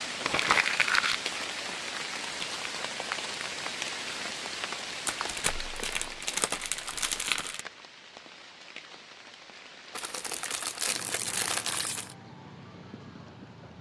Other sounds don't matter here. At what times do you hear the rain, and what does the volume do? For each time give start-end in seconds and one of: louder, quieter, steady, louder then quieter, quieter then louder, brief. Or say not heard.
0.0-13.7 quieter.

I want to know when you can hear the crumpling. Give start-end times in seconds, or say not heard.
0.2-1.8, 5.0-7.6, 9.9-12.2.